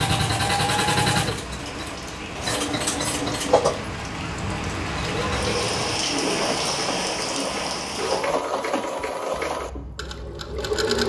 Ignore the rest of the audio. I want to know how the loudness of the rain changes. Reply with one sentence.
The volume of the rain goes up.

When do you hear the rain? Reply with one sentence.
You can hear the rain from 0.1 to 8.2 s.